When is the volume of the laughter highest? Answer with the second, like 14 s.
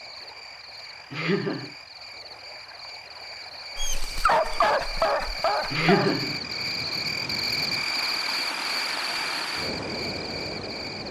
6 s.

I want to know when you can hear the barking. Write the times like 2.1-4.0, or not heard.
3.8-6.2.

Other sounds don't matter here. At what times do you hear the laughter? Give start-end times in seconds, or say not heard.
1.1-1.7, 5.7-6.4.